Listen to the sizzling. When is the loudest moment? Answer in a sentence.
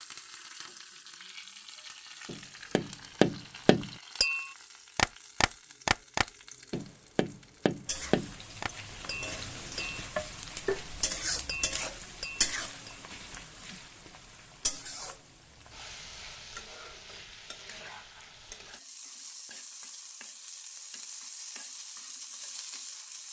The volume of the sizzling peaks at 12 seconds.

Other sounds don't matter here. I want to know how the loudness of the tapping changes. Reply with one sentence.
The volume of the tapping goes down.